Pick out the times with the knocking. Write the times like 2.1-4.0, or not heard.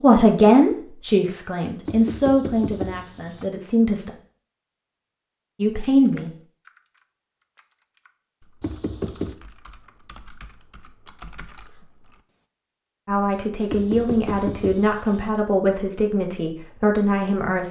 1.9-3.5, 8.6-9.3, 13.7-15.3.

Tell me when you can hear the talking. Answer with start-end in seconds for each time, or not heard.
0.0-4.1, 5.6-6.3, 13.1-17.6.